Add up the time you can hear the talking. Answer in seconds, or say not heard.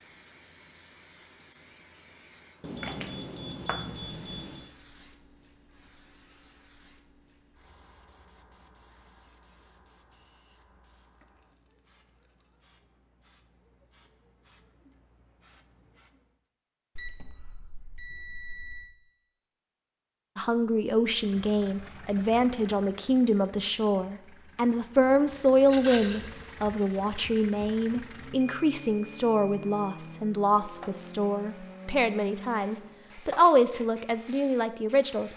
15 s.